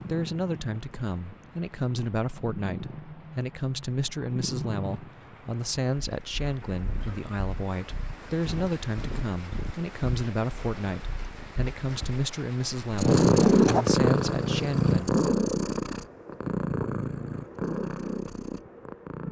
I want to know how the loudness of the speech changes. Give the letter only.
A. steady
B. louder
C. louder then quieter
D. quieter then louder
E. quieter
A.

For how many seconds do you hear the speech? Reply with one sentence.
You can hear the speech for 15 seconds altogether.